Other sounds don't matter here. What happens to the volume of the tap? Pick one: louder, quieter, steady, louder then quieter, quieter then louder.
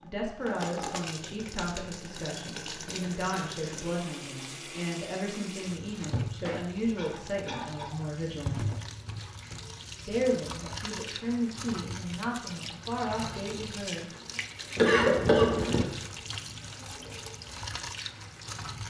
steady.